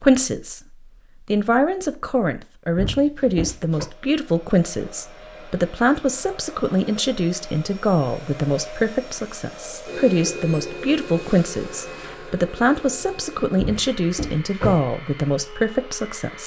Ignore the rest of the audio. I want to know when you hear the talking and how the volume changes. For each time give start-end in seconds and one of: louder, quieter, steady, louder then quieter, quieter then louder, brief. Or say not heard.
0.0-0.6 brief
1.2-16.4 steady.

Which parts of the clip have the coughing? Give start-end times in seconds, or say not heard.
not heard.